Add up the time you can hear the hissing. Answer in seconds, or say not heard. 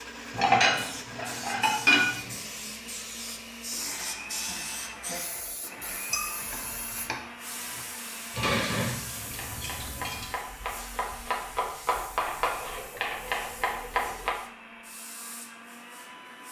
16 s.